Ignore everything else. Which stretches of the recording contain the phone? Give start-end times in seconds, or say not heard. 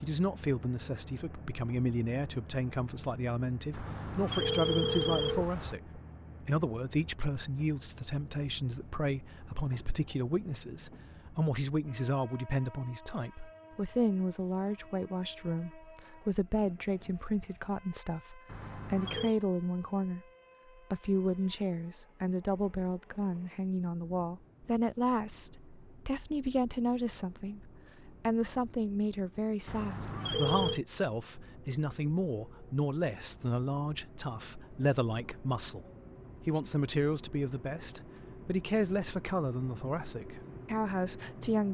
3.7-5.8, 18.4-19.4, 29.6-30.8.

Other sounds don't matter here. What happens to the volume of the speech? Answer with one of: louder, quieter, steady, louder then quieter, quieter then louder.
steady.